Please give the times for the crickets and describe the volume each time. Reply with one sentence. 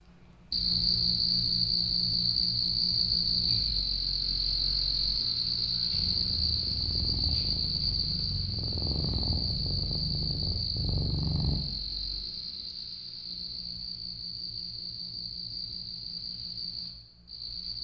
You can hear the crickets from 0.0 to 17.7 s, getting quieter.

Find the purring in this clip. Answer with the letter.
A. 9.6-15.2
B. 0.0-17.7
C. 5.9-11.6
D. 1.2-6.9
C.